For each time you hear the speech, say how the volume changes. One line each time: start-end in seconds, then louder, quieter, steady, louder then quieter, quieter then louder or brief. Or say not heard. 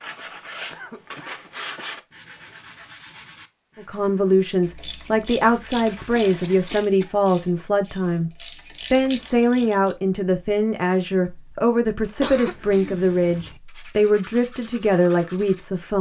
3.8-15.9 steady.